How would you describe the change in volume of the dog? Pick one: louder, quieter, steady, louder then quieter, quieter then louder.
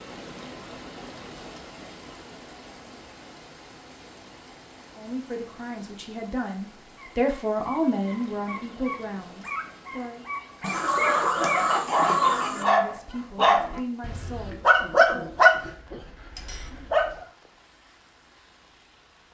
louder.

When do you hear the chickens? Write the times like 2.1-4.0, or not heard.
10.6-12.7.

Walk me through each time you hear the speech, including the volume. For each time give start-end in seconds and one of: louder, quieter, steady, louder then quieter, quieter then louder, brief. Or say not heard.
5.0-10.2 louder then quieter
12.5-15.3 brief.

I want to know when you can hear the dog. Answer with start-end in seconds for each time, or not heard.
7.0-17.1.